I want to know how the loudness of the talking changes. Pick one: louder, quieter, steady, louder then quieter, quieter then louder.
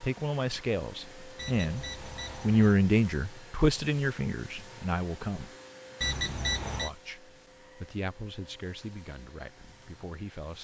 louder then quieter.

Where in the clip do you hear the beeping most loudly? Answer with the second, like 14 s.
6 s.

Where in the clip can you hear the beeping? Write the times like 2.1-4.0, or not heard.
1.4-2.8, 6.0-6.9.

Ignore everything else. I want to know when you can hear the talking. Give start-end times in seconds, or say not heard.
0.0-5.5, 6.8-10.5.